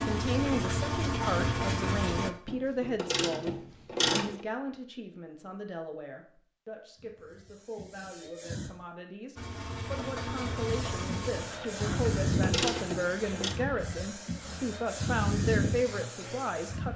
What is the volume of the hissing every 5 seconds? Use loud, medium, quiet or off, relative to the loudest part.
off, quiet, loud, loud.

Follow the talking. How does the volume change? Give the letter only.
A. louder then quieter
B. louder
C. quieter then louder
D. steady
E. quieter
C.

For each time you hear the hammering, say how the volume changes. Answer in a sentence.
The hammering can't be heard in this clip.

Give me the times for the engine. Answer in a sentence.
You can hear the engine from 0.0 to 2.3 s and from 9.3 to 16.9 s.